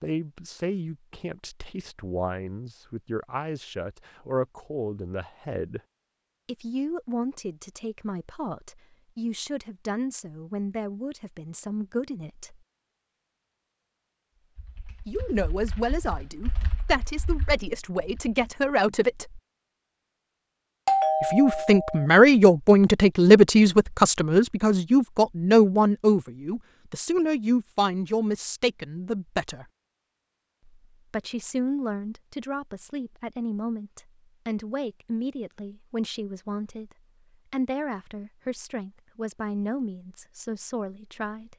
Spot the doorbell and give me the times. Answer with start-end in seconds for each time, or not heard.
20.9-22.1.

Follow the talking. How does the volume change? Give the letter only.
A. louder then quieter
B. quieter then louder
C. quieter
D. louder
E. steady
A.